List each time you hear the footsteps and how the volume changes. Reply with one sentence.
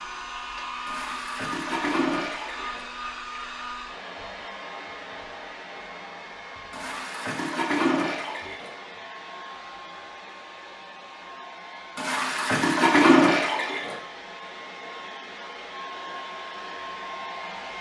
The footsteps can't be heard in this clip.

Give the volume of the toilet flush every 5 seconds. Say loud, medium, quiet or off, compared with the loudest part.
medium, medium, loud, off.